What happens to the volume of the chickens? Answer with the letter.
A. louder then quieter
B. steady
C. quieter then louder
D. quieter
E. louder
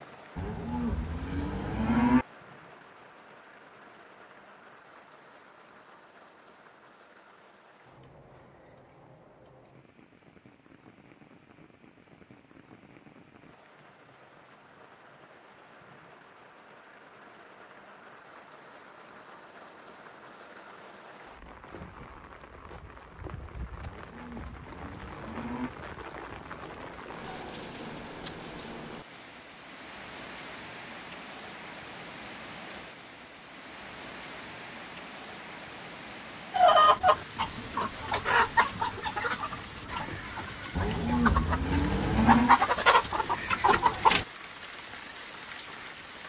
C.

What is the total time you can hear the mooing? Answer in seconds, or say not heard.
6 s.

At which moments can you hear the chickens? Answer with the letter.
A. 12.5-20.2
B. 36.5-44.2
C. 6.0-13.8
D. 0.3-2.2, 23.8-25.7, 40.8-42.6
B.